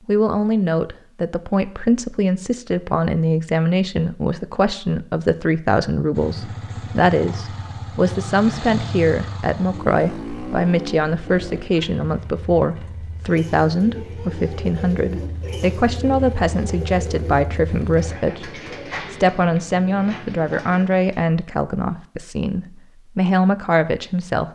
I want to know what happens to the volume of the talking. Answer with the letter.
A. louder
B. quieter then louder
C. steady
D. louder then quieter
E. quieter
C.